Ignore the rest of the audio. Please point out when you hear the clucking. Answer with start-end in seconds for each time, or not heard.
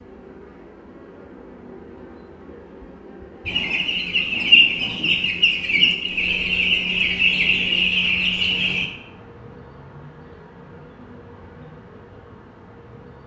3.5-8.8.